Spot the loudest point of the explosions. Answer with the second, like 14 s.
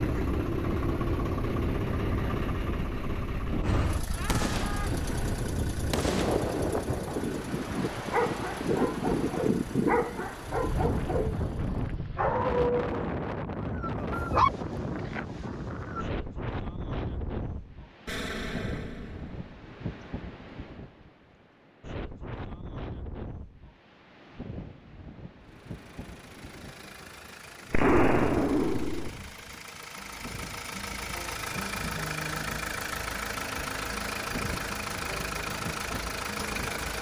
28 s.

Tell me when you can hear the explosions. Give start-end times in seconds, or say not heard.
4.2-7.0, 18.1-19.4, 27.7-29.1.